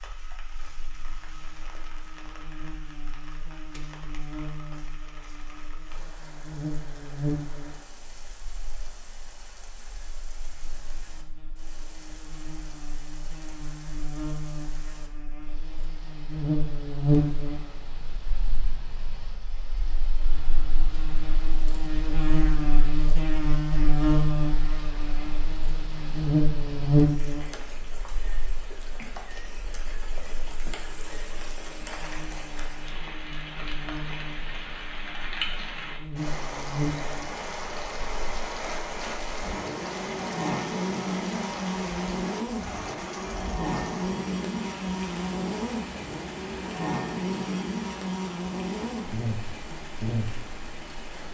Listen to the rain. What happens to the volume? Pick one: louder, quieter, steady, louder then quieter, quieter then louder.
louder.